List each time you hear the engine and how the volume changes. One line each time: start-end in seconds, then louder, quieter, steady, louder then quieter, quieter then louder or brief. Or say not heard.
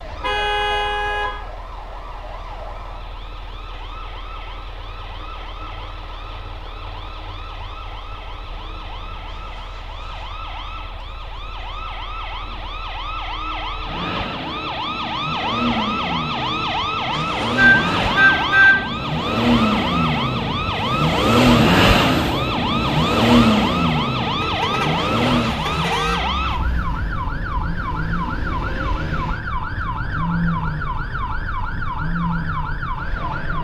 0.0-33.5 louder then quieter.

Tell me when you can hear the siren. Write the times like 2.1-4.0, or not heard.
0.0-33.5.